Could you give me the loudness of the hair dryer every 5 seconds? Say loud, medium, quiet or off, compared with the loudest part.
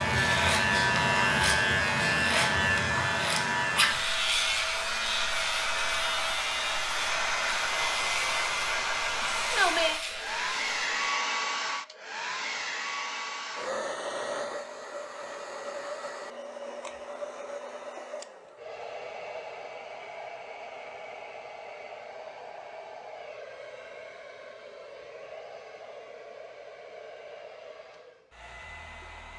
medium, loud, loud, medium, quiet, quiet.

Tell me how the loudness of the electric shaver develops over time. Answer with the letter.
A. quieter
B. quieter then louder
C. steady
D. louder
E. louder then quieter
A.